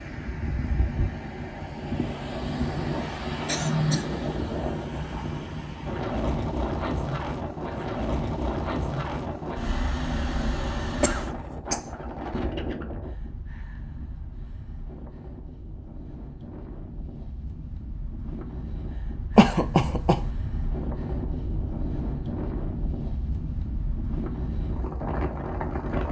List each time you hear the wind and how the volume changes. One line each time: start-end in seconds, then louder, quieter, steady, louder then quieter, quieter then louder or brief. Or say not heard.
0.0-26.0 quieter then louder.